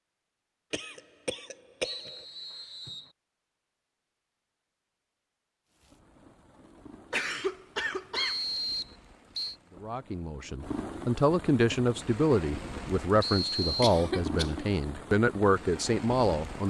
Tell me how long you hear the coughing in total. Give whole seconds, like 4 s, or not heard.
4 s.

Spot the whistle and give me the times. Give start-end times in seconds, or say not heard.
1.8-3.1, 8.2-9.6, 13.2-14.0.